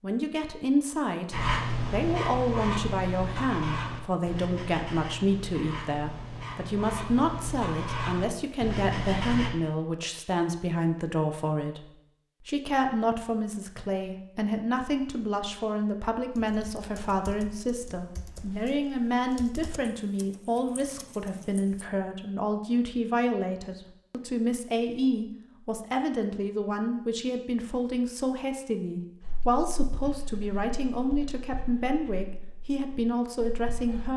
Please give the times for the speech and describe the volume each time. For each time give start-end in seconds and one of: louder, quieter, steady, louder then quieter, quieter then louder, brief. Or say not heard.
0.0-34.1 steady.